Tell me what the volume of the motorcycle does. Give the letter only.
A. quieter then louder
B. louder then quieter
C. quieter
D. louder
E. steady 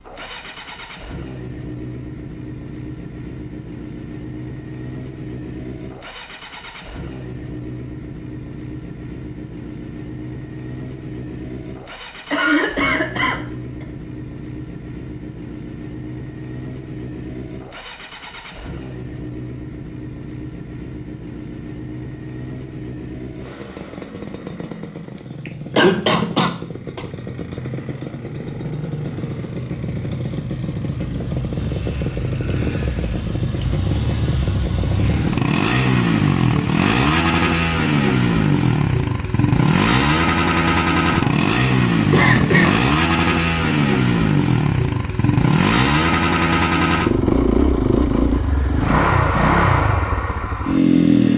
D.